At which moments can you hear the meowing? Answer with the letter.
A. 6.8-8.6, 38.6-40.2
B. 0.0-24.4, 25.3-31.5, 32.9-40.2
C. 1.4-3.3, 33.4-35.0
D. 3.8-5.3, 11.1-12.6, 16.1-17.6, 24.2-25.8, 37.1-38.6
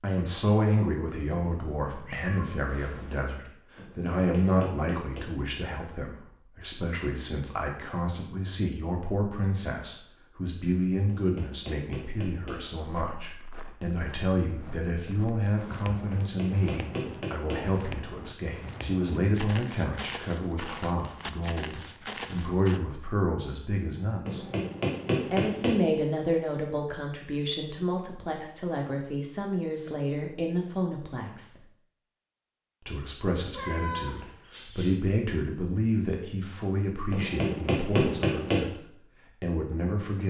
C.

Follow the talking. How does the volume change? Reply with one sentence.
The volume of the talking stays about the same.